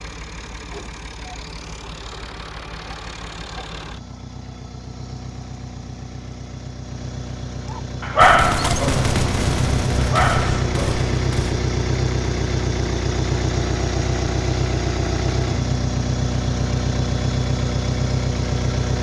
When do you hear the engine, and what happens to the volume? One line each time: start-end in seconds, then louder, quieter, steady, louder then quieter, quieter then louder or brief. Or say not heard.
0.0-18.9 louder.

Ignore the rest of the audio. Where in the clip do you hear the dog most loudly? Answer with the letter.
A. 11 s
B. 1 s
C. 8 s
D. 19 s
C.